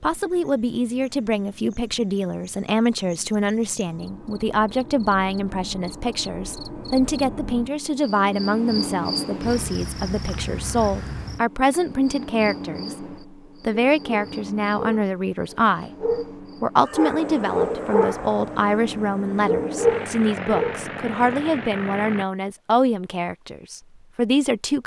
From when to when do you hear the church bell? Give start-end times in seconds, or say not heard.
not heard.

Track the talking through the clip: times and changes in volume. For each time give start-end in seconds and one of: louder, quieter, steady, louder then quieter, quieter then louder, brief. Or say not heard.
0.0-12.9 steady
13.6-15.9 brief
16.6-24.8 steady.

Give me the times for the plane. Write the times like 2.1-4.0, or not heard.
17.1-22.2.